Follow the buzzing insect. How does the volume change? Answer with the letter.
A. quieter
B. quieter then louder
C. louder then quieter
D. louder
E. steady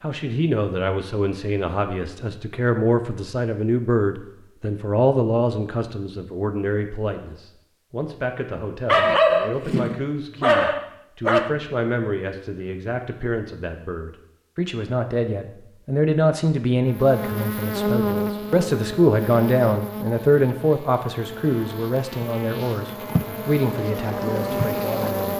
B.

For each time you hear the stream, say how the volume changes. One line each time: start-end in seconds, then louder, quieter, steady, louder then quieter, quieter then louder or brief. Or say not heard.
not heard.